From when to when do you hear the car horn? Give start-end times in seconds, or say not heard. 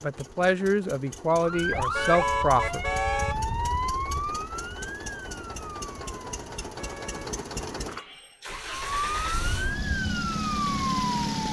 1.9-3.4, 6.8-7.3.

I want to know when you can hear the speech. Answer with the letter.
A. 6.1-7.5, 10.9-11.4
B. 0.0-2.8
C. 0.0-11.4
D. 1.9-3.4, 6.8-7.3
B.